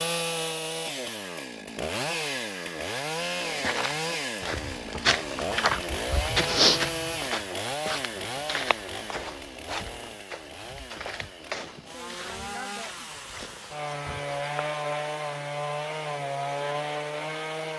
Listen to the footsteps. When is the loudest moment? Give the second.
7 s.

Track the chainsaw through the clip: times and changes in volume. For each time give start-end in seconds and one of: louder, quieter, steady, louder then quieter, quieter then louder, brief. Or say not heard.
0.0-17.7 quieter then louder.